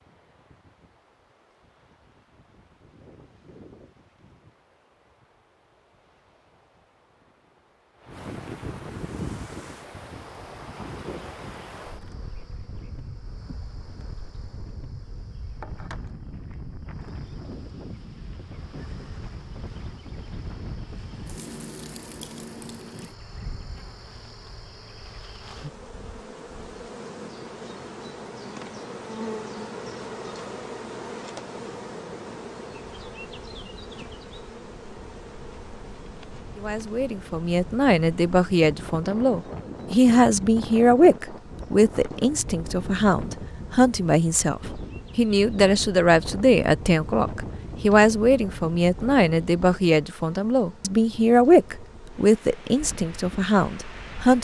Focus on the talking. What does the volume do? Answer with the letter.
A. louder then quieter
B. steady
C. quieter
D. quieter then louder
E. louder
B.